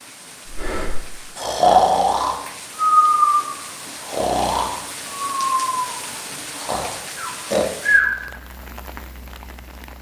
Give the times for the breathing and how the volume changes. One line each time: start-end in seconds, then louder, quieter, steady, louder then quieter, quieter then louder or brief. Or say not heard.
0.5-8.1 quieter.